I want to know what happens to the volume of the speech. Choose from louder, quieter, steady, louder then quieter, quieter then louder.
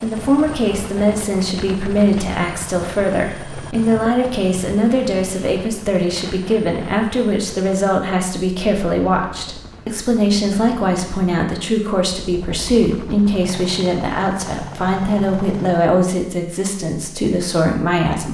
steady.